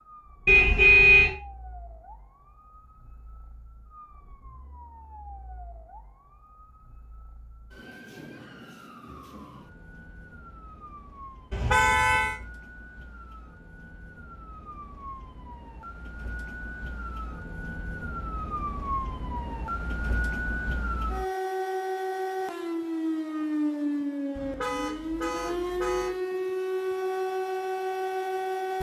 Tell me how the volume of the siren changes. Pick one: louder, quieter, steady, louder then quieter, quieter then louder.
louder.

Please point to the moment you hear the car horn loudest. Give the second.
1 s.